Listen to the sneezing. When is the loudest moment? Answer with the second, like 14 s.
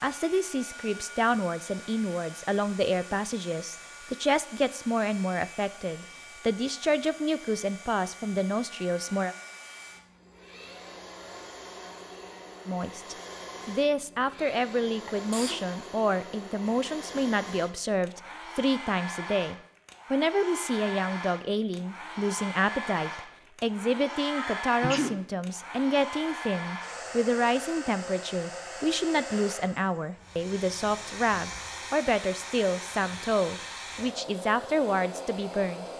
25 s.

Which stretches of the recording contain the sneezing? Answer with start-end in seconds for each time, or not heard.
15.1-15.7, 24.2-25.2.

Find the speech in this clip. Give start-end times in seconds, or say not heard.
0.0-9.3, 12.7-35.9.